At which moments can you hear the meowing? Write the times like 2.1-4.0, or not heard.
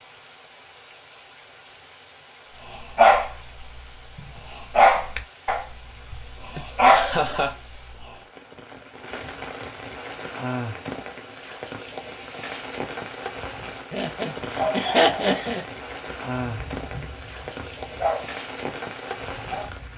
not heard.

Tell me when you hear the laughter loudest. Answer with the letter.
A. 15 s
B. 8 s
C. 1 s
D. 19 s
A.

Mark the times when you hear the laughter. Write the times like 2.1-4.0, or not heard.
6.5-7.5, 13.9-15.6.